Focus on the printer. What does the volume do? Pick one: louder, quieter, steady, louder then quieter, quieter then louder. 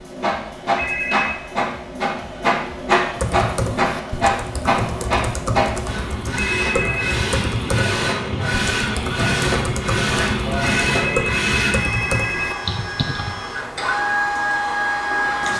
steady.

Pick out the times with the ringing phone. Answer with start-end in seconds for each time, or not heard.
0.8-1.4, 6.3-7.2, 10.8-12.6.